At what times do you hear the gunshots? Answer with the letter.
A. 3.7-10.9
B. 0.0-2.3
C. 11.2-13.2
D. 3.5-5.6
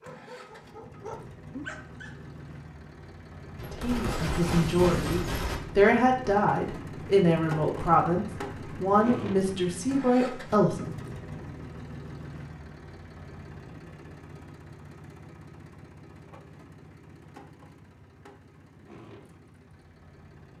D.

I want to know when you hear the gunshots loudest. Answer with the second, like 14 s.
5 s.